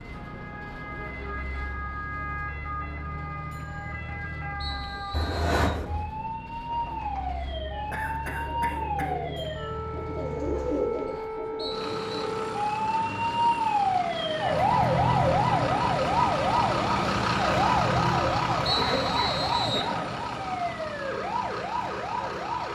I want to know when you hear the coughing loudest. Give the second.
6 s.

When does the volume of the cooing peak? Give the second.
11 s.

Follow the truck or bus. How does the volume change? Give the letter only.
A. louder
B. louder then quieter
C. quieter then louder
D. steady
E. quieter
A.